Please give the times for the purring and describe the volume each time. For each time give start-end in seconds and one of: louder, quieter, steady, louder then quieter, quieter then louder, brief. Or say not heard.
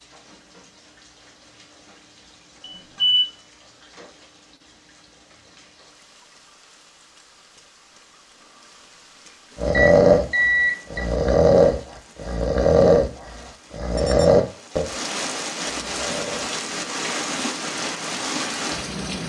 not heard.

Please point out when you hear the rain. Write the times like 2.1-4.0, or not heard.
0.0-19.2.